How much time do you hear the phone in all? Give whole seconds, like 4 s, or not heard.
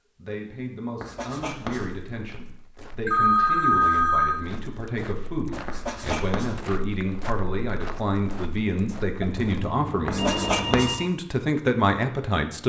3 s.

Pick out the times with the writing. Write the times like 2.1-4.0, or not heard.
1.0-1.9, 5.7-6.5, 10.1-10.9.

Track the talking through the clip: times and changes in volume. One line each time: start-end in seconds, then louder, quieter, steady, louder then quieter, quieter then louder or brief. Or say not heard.
0.1-12.6 louder.